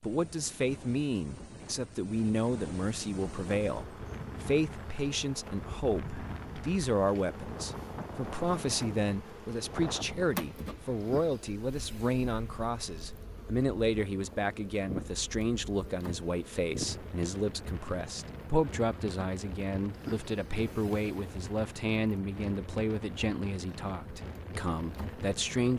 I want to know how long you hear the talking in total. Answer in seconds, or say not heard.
26 s.